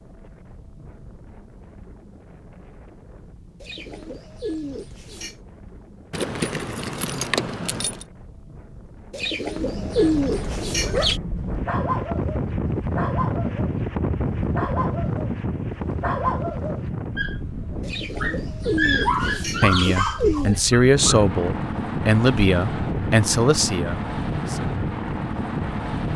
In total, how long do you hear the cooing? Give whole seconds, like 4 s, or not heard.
7 s.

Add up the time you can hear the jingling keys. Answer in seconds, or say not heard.
2 s.